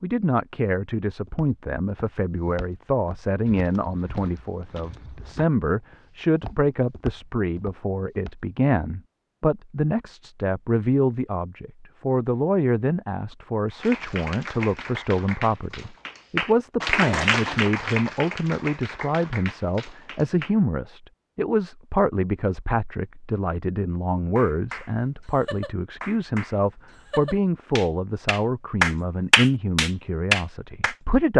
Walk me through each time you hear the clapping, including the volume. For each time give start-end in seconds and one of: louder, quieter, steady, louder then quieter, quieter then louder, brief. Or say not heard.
13.7-20.6 louder then quieter
24.4-30.9 louder.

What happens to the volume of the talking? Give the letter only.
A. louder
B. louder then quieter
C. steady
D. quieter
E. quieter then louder
C.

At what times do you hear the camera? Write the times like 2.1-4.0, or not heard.
not heard.